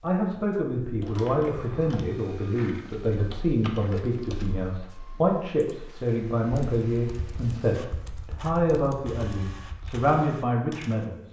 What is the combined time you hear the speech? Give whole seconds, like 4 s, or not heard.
11 s.